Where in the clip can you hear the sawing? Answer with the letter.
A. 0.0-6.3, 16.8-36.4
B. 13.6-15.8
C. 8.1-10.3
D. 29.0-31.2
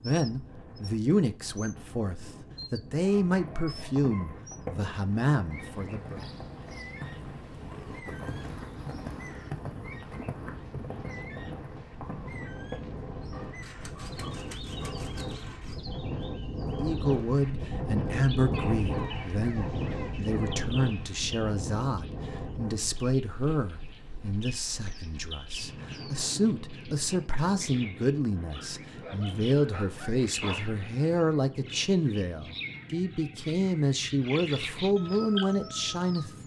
B.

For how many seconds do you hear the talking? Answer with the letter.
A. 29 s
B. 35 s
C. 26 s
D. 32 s
C.